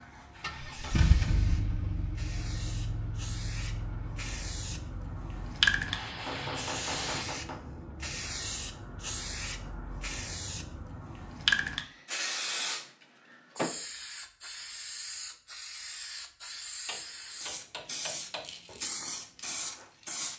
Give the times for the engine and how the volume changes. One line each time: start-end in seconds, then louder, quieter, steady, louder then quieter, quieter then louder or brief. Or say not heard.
0.4-7.2 quieter then louder.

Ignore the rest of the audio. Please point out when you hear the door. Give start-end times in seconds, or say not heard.
not heard.